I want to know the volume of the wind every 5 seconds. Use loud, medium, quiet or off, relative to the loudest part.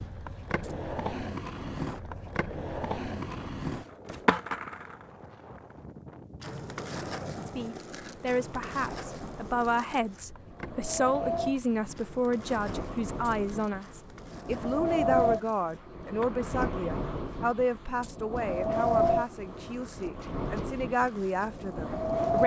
quiet, quiet, medium, loud, loud.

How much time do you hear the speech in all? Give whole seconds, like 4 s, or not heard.
15 s.